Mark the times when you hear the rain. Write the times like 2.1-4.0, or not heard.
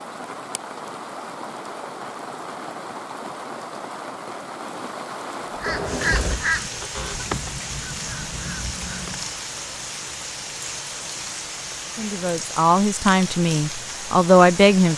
0.0-14.9.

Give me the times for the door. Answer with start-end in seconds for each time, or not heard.
5.7-7.3.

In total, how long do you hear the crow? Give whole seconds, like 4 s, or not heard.
4 s.